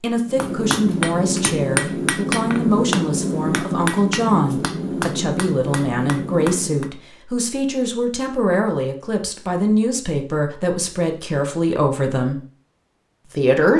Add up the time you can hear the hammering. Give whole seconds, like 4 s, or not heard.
7 s.